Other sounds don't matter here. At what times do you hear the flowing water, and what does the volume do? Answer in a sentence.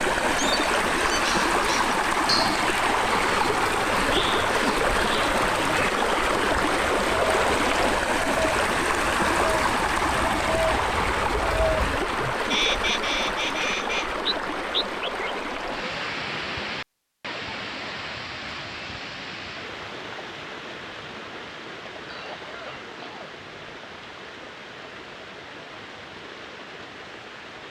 You can hear the flowing water from 0.0 to 27.6 s, getting quieter.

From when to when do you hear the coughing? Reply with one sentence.
The coughing can be heard from 22.1 to 23.8 s.